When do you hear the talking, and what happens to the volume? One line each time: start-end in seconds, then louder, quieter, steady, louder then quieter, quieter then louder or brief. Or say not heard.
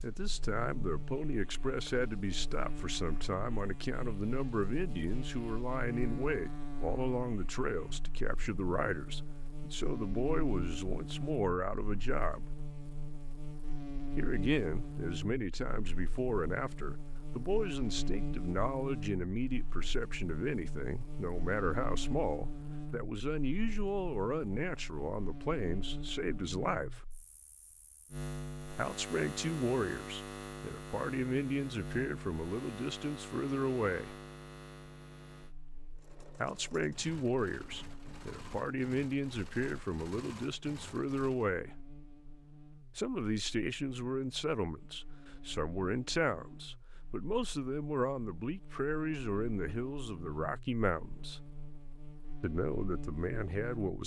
0.0-12.5 steady
14.2-27.1 steady
28.8-34.1 quieter then louder
36.4-41.8 quieter then louder
43.0-51.4 steady
52.4-54.0 brief.